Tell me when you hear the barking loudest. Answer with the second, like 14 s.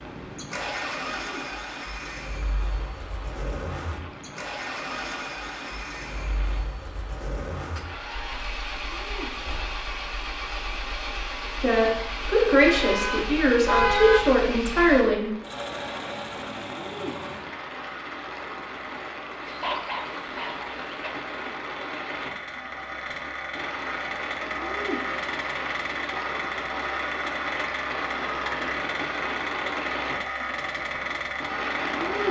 20 s.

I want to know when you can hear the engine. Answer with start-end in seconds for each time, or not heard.
0.0-32.2.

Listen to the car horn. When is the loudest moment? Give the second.
14 s.